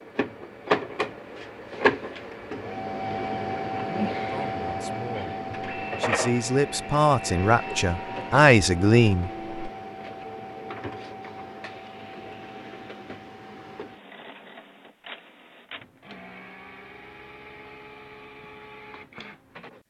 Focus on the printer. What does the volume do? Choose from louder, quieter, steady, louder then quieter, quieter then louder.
quieter.